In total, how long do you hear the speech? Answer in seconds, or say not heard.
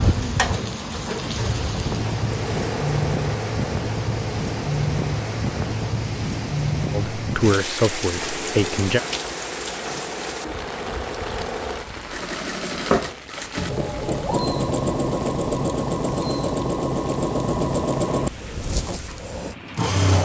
2 s.